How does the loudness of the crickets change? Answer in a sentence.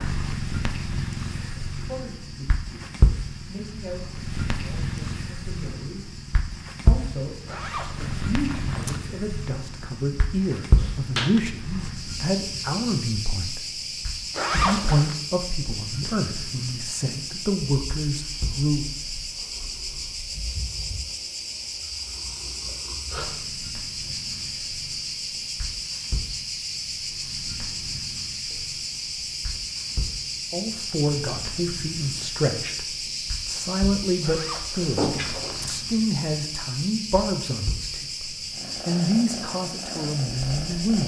The loudness of the crickets goes up.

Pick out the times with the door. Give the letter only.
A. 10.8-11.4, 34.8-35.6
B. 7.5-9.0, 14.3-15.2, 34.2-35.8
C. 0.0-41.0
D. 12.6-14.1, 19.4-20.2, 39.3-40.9
A.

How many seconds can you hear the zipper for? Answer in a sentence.
You can hear the zipper for 4 seconds altogether.